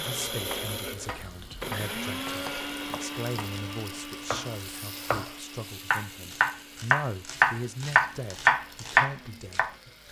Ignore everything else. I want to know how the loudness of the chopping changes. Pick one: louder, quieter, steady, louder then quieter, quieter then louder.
quieter then louder.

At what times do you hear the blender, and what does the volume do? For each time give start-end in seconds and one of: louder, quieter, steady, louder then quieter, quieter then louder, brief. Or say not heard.
0.0-10.0 quieter.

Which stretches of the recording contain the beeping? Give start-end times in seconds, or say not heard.
not heard.